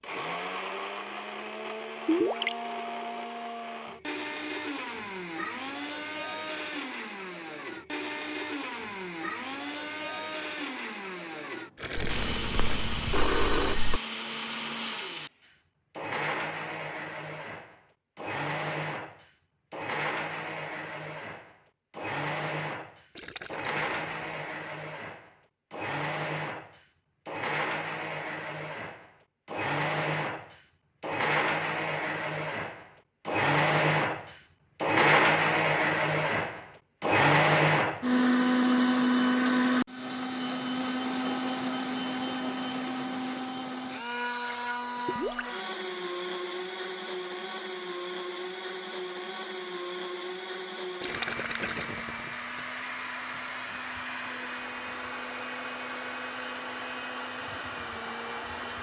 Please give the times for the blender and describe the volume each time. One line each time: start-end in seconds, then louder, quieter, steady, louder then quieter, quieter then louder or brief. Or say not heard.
0.0-58.7 louder then quieter.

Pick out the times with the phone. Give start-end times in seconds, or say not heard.
11.9-14.0.